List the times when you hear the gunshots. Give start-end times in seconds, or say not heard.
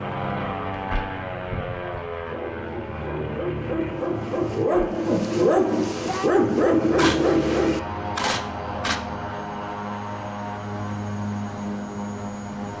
7.0-8.9.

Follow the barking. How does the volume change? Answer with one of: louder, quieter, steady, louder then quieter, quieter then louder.
louder.